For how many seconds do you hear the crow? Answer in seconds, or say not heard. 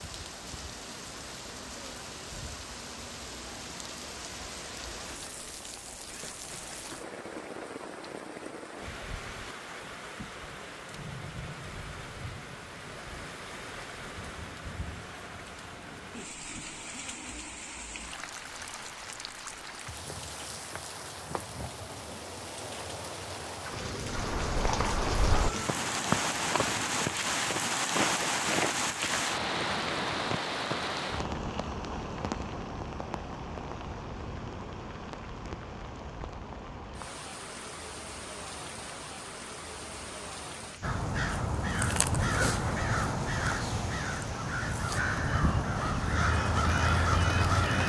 7 s.